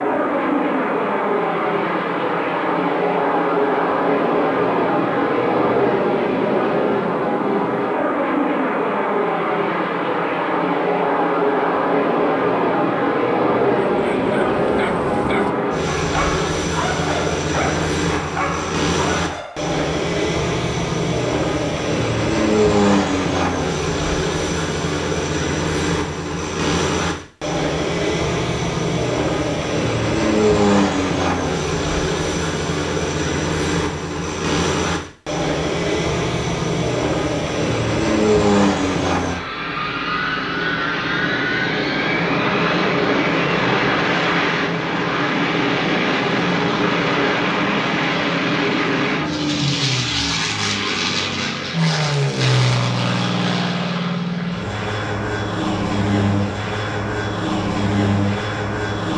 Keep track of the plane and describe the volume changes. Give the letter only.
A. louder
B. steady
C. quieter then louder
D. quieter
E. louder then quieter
B.